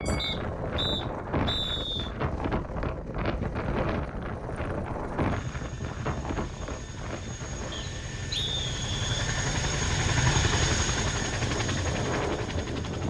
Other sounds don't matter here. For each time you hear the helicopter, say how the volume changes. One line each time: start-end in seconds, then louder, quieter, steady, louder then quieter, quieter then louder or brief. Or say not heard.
0.0-13.0 louder.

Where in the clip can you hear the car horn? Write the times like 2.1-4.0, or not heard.
not heard.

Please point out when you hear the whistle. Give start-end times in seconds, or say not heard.
0.1-2.1, 7.7-9.1.